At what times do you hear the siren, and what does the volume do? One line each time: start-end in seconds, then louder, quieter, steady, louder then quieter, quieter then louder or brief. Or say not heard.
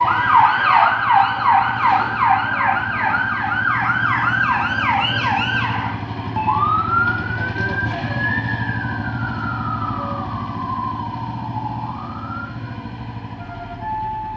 0.0-14.3 quieter.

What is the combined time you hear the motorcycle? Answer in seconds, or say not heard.
14 s.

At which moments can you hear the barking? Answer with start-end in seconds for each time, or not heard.
not heard.